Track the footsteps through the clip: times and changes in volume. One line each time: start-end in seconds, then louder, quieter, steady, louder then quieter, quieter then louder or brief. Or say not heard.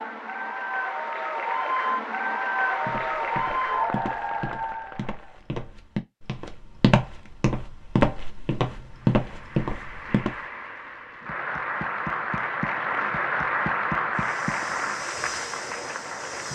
2.9-10.3 louder
14.2-16.5 brief.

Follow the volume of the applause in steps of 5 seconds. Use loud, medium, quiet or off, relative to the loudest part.
loud, quiet, loud, medium.